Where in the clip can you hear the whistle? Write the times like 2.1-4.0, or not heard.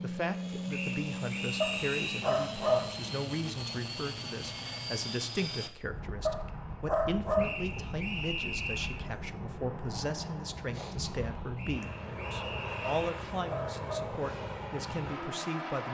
0.7-2.4, 7.3-9.1, 11.6-13.2.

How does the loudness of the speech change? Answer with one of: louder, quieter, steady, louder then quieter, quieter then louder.
steady.